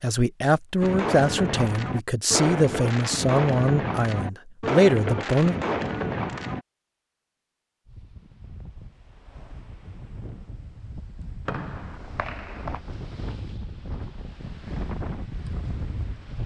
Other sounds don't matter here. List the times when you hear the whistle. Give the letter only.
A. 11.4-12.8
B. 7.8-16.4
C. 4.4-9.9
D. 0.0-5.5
A.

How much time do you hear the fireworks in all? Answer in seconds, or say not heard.
6 s.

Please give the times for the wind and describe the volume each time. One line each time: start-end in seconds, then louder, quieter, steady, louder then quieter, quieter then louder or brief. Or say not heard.
7.8-16.4 louder.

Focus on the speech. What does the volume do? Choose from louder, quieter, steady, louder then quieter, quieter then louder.
quieter then louder.